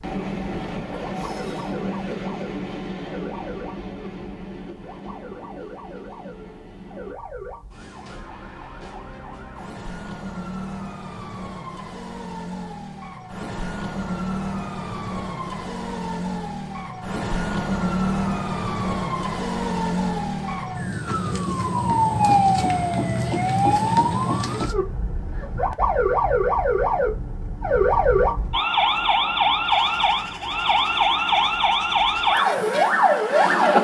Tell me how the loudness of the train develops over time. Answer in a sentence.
The volume of the train goes down.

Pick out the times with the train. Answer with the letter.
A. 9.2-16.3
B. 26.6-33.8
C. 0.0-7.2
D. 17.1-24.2
C.